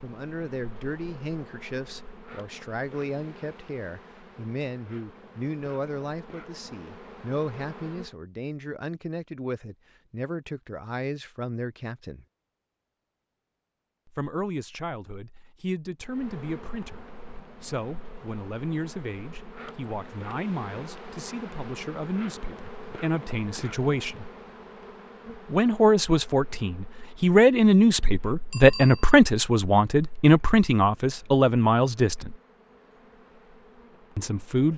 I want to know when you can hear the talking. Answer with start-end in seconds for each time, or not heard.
0.0-12.2, 14.1-24.3, 25.5-32.4, 34.1-34.7.